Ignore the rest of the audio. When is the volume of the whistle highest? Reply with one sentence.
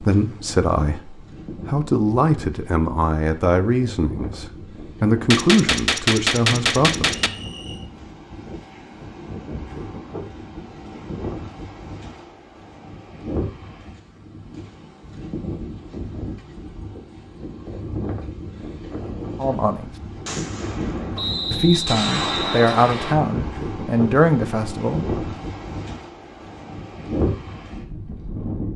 The loudest moment of the whistle is at 22 seconds.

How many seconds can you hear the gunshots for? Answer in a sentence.
The gunshots can be heard for 5 seconds in total.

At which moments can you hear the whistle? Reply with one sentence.
You can hear the whistle from 7.3 to 7.8 s and from 21.1 to 23.1 s.